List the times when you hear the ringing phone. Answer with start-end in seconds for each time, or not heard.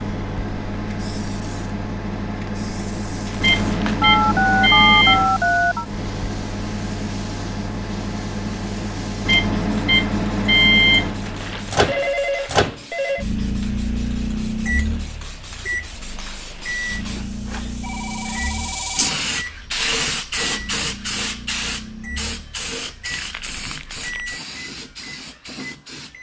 4.0-5.8, 11.8-13.2, 17.8-19.2.